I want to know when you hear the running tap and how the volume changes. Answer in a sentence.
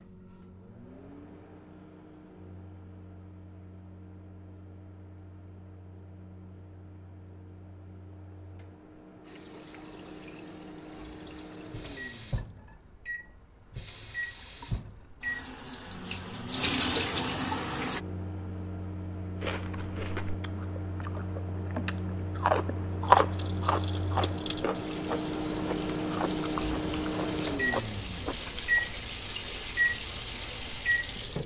The running tap can be heard from 9.2 to 18.0 s, getting louder; and from 23.0 to 31.4 s, getting louder.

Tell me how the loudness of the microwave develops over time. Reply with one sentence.
The loudness of the microwave goes up.